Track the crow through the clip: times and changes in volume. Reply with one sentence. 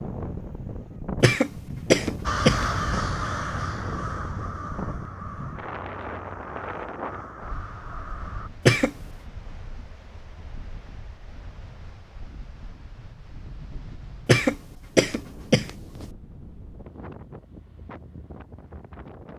The crow can be heard from 2.2 to 8.5 s, getting quieter.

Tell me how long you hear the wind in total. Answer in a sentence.
The wind can be heard for 19 seconds in total.